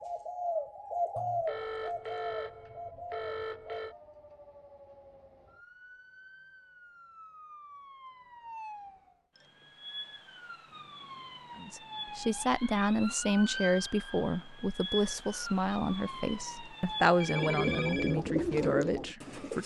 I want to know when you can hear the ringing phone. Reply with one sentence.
You can hear the ringing phone from 1.1 to 4.0 s and from 17.2 to 18.2 s.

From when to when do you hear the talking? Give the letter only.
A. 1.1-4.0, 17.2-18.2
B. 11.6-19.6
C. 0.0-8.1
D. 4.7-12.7
B.